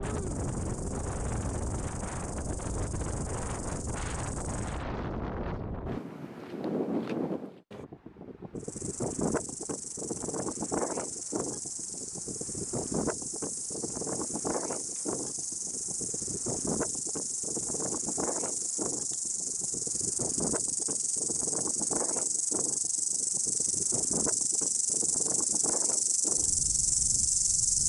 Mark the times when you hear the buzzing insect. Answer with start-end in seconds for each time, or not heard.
0.0-4.8, 8.6-27.8.